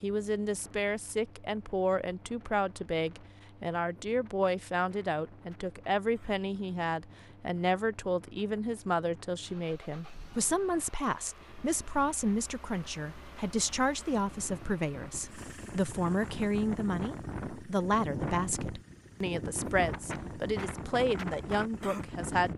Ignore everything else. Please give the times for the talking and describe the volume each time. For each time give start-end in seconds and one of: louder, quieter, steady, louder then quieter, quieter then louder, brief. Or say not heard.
0.0-22.5 steady.